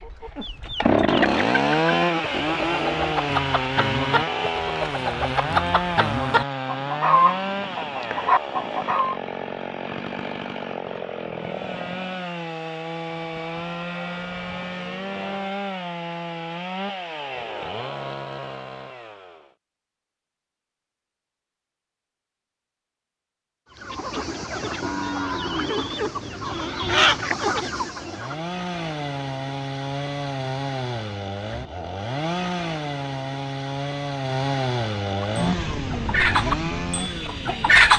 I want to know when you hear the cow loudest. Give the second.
25 s.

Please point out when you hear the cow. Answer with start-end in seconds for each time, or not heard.
13.2-15.6, 24.8-26.9.